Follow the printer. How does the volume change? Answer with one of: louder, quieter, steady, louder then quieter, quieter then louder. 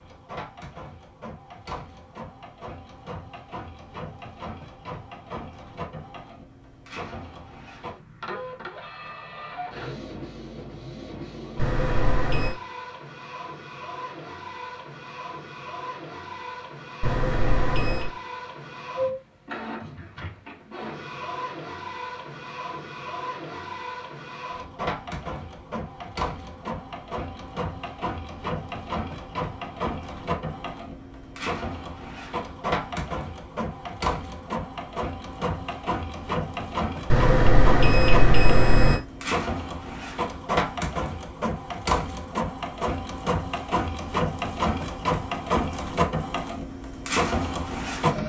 louder.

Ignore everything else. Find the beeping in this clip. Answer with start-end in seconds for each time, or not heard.
11.6-12.6, 17.0-18.1, 37.1-39.0.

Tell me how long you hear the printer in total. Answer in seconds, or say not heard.
48 s.